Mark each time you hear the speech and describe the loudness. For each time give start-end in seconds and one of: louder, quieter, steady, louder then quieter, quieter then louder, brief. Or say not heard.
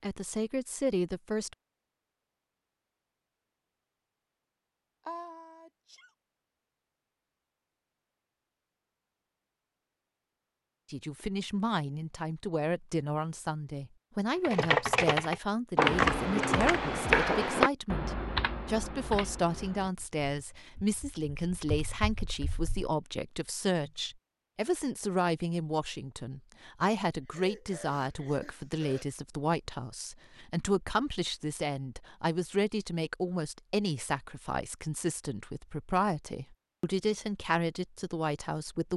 0.0-1.6 brief
10.9-38.9 steady.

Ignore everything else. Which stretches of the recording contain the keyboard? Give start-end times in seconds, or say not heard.
14.4-22.9.